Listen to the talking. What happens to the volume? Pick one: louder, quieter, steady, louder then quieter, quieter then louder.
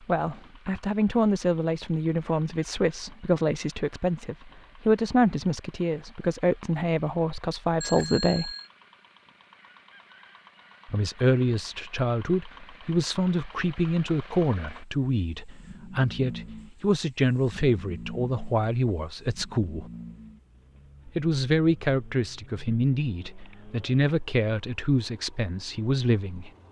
steady.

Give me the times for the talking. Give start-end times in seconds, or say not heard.
0.1-8.6, 10.8-19.9, 21.1-26.5.